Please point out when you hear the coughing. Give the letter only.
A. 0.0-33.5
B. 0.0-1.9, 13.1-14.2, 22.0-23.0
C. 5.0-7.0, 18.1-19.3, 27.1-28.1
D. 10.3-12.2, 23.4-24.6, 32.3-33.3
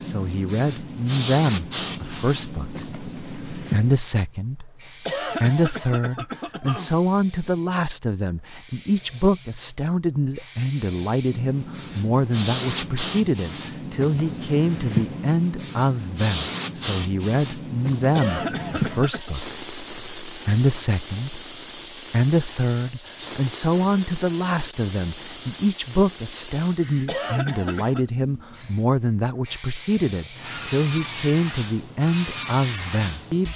C.